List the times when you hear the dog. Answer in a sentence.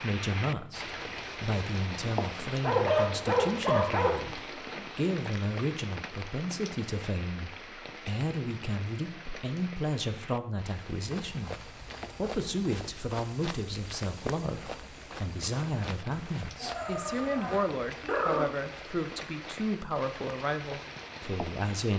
You can hear the dog from 2.6 to 4.2 s and from 16.6 to 18.5 s.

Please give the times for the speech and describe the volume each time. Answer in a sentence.
You can hear the speech from 0.0 to 21.9 s, at a steady volume.